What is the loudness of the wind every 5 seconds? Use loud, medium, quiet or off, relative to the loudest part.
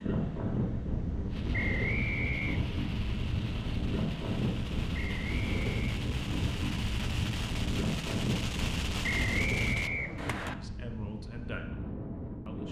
loud, loud, medium.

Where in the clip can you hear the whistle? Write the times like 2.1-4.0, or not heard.
1.5-2.6, 4.9-6.0, 9.0-10.6.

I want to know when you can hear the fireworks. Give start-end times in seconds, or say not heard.
1.2-10.6.